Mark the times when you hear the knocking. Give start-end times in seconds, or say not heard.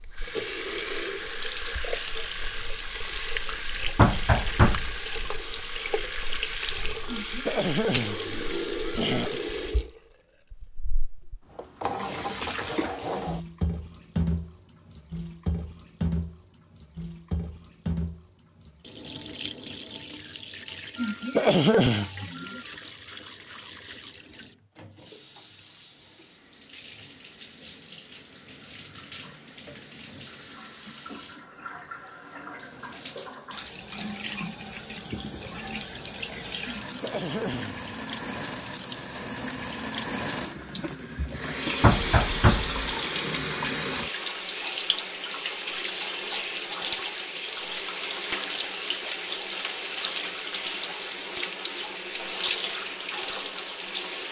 4.0-5.0, 41.8-42.8.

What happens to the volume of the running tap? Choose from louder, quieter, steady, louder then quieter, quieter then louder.
quieter then louder.